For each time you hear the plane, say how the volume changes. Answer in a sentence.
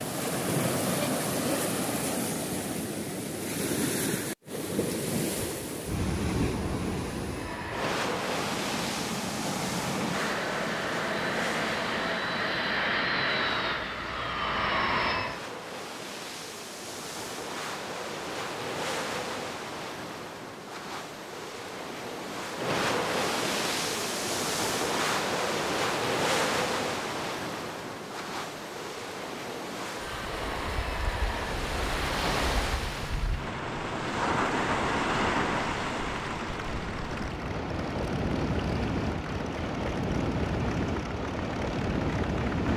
You can hear the plane from 7.2 to 15.4 s, getting louder; and from 30.1 to 42.7 s, at a steady volume.